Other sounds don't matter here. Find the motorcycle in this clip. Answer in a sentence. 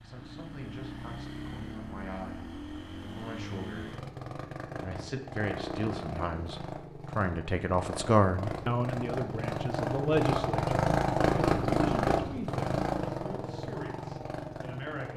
You can hear the motorcycle from 0.0 to 15.1 s.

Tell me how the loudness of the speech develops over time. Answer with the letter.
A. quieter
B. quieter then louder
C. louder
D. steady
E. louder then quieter
E.